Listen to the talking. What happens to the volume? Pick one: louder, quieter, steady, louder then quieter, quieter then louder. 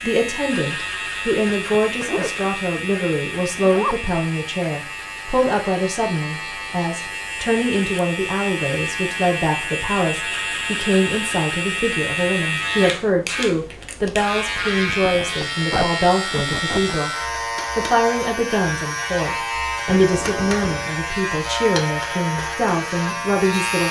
steady.